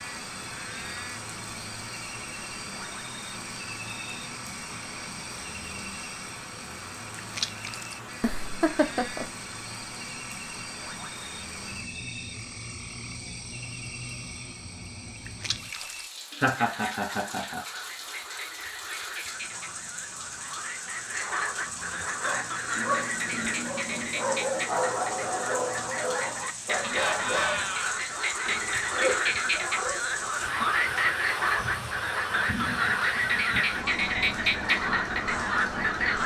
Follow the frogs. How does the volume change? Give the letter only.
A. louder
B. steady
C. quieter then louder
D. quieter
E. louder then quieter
A.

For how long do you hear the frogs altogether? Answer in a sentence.
The frogs can be heard for 36 seconds in total.